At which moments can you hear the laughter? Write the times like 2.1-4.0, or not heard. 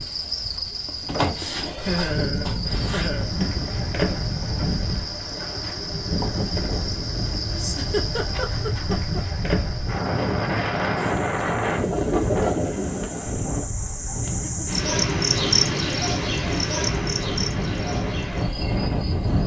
1.8-3.3, 7.5-9.2, 14.2-14.8.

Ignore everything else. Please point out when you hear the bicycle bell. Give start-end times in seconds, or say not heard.
not heard.